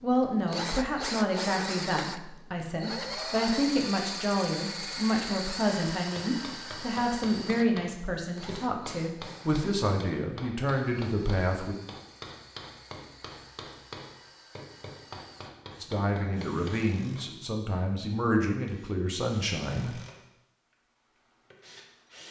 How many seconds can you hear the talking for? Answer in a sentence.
The talking can be heard for 16 seconds in total.